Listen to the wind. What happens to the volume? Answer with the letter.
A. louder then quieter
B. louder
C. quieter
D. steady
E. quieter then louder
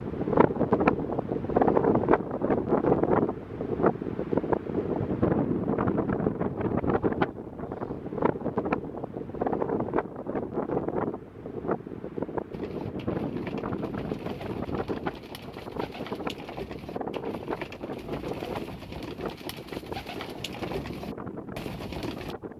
C.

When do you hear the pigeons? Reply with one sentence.
You can hear the pigeons from 12.5 to 22.4 s.